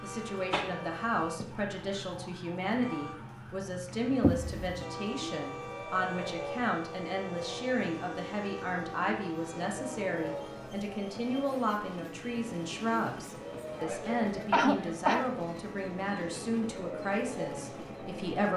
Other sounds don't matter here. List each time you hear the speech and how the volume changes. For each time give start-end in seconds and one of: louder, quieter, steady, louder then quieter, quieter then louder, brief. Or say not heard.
0.0-18.5 steady.